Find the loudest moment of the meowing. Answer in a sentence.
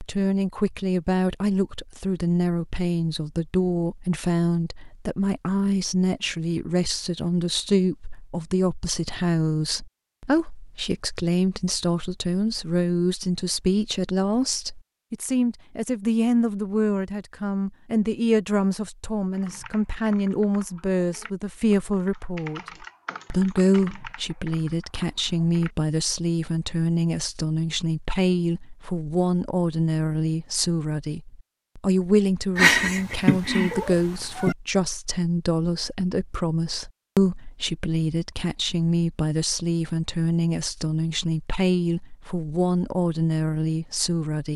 The loudest moment of the meowing is at 33 seconds.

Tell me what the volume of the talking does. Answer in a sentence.
The loudness of the talking stays about the same.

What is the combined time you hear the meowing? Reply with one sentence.
You can hear the meowing for 2 seconds altogether.